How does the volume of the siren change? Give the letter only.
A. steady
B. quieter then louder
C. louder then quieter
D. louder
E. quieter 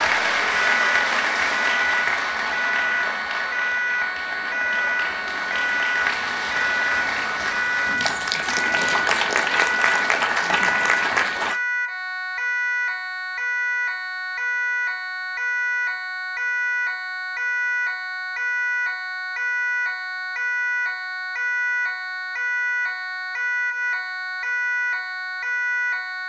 A.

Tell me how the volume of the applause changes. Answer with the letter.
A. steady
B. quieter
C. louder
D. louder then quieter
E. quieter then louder
E.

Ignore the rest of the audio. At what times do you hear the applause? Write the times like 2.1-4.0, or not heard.
0.0-11.6.